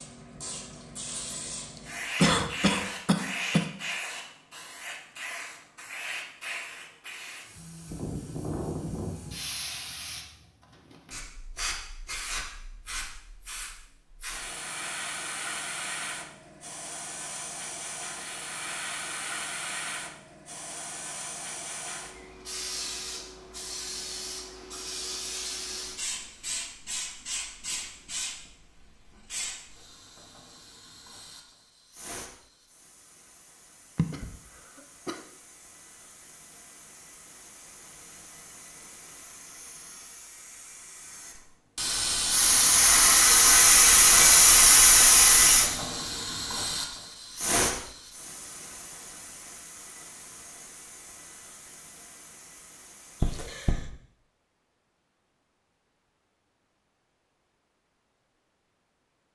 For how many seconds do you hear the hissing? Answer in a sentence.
You can hear the hissing for 54 seconds altogether.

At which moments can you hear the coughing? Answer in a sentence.
The coughing can be heard from 2.1 to 3.7 s, from 34.0 to 35.2 s and from 53.2 to 53.8 s.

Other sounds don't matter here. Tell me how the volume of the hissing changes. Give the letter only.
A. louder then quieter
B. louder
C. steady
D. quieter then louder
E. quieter
B.